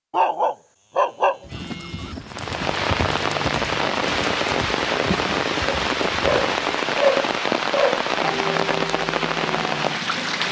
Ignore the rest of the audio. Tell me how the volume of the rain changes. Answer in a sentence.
The loudness of the rain stays about the same.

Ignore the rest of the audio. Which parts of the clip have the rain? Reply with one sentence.
The rain can be heard from 2.2 to 10.4 s.